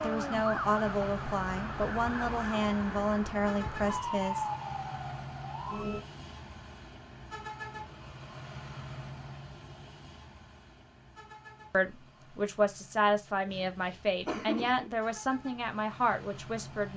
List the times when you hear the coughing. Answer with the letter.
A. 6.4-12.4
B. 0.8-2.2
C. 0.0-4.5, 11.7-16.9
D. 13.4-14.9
D.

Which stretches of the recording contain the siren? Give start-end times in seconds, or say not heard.
0.0-6.0.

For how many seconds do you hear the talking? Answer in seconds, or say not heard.
10 s.